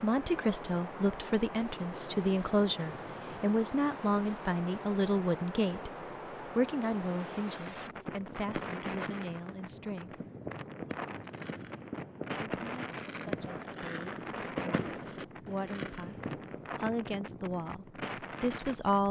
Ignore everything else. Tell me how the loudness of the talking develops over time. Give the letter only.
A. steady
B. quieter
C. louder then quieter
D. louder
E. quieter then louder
E.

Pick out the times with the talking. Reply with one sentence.
You can hear the talking from 0.0 to 5.9 s, from 6.5 to 10.2 s and from 12.6 to 19.0 s.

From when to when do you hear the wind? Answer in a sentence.
You can hear the wind from 0.0 to 19.0 s.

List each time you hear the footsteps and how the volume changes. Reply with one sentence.
The footsteps can't be heard in this clip.